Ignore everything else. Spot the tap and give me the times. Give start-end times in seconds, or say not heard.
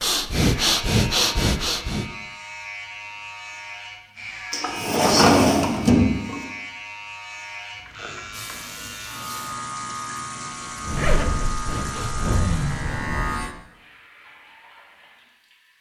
8.3-15.7.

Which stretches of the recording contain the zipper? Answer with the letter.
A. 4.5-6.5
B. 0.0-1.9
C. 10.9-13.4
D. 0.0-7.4
C.